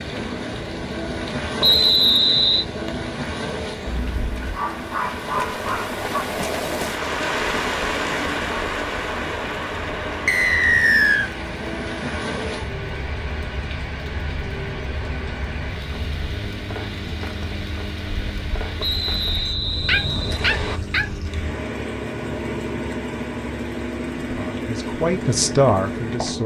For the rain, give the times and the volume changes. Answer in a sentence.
You can hear the rain from 0.0 to 26.4 s, getting louder then quieter.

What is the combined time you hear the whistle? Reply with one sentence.
You can hear the whistle for 4 seconds altogether.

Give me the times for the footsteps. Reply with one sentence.
The footsteps can't be heard in this clip.